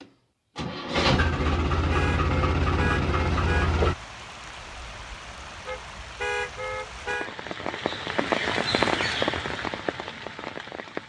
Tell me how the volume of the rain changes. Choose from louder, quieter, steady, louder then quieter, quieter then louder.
louder then quieter.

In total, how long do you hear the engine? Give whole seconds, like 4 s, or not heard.
4 s.